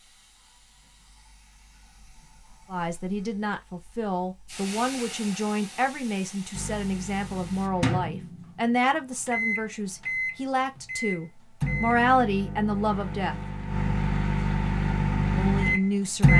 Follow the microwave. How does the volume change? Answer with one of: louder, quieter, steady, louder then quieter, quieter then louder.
louder.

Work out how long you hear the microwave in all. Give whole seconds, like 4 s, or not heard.
10 s.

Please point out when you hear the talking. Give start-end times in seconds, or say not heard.
2.7-13.3, 15.3-16.3.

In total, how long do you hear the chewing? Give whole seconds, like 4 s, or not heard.
not heard.